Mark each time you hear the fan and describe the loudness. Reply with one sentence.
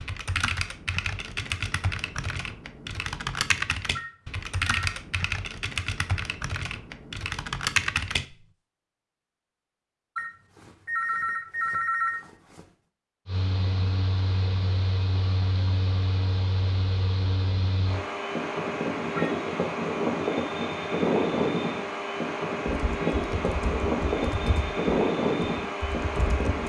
You can hear the fan from 13.2 to 26.6 s, getting louder.